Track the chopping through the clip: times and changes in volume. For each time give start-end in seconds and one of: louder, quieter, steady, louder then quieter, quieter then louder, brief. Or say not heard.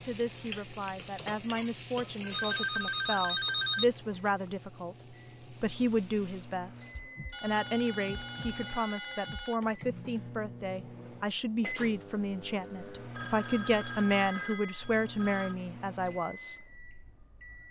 not heard.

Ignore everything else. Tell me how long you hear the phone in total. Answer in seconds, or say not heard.
7 s.